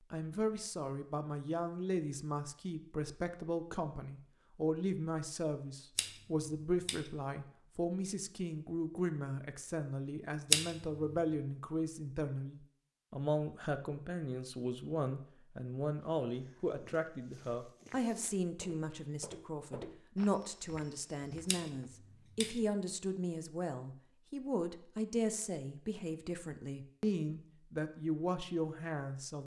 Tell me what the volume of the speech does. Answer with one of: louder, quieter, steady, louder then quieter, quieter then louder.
steady.